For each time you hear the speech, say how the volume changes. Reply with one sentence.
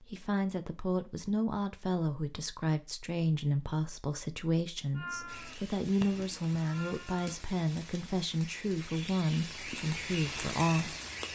The speech can be heard from 0.0 to 11.2 s, at a steady volume.